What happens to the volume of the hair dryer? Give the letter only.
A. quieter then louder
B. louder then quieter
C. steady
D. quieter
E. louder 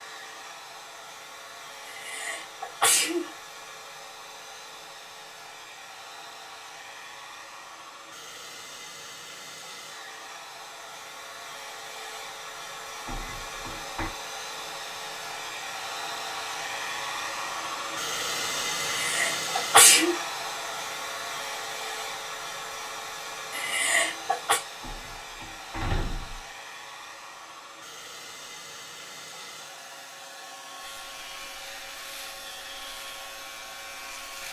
B.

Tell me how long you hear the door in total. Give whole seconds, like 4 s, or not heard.
3 s.